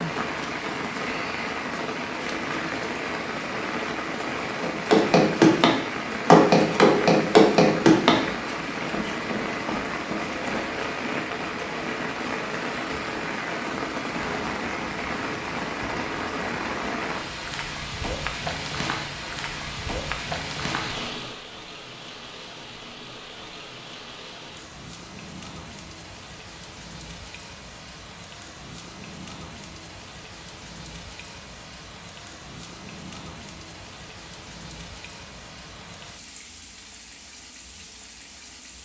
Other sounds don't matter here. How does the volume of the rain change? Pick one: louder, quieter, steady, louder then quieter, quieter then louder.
quieter.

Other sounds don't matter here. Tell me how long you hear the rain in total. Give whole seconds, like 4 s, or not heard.
39 s.